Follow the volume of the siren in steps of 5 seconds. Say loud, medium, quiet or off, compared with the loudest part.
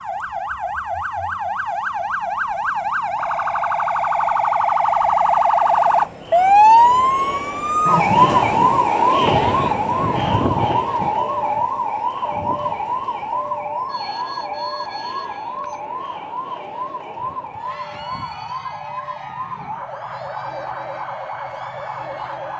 medium, loud, medium, quiet, quiet.